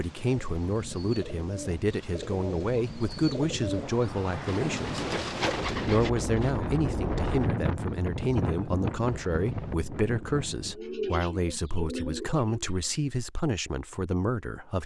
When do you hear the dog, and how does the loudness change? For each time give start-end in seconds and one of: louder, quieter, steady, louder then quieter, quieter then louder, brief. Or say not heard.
not heard.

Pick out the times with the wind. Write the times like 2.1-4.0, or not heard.
0.0-10.8.